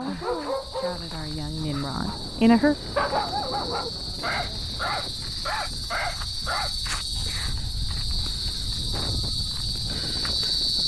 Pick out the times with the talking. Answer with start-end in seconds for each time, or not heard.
0.0-2.8.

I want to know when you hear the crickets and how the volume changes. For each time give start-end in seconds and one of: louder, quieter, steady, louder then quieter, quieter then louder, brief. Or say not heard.
0.0-10.8 louder.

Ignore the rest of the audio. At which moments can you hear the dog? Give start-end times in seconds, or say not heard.
0.0-6.8.